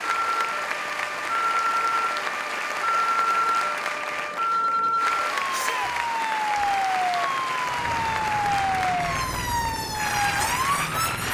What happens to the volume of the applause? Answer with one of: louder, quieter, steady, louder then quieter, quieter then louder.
steady.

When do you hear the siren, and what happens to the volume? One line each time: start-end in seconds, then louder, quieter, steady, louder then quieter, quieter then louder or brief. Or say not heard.
0.0-11.2 steady.